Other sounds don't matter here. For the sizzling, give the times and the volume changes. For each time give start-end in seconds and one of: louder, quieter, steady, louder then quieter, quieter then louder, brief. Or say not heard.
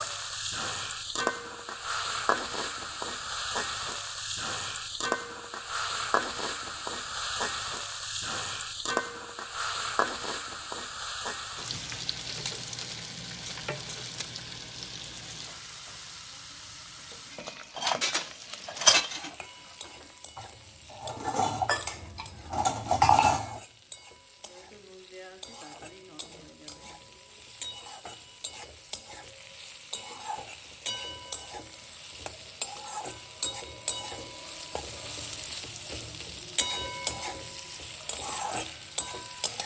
0.0-39.6 quieter then louder.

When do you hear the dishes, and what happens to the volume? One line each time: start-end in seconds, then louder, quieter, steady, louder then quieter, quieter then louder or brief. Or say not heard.
17.4-23.6 quieter then louder.